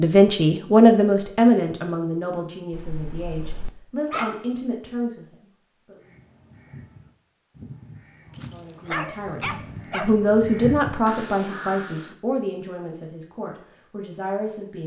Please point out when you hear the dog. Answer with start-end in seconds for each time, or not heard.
2.7-4.5, 8.3-10.2.